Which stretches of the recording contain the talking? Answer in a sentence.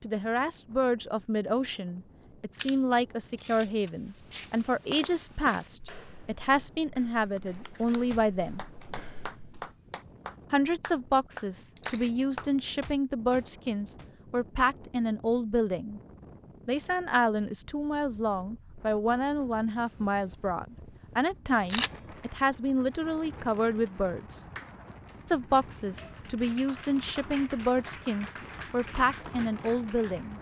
The talking can be heard from 0.0 to 8.6 s, from 10.5 to 16.0 s, from 16.6 to 24.4 s and from 25.2 to 30.3 s.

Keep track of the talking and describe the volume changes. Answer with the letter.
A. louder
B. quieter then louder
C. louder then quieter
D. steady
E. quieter
D.